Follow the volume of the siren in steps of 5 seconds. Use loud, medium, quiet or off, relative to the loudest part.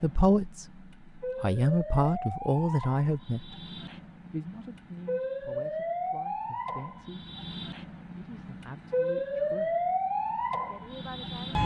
medium, loud, loud.